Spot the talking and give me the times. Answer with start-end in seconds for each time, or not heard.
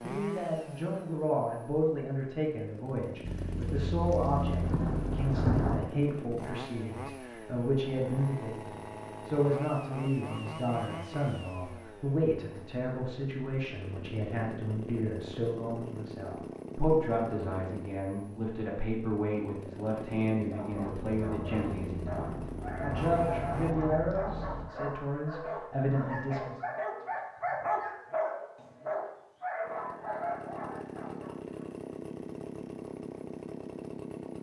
0.0-26.6.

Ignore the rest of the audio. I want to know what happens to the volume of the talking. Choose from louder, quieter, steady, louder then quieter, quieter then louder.
steady.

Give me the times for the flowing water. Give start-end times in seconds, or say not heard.
not heard.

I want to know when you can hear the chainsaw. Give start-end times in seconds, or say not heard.
0.0-23.8, 29.6-34.3.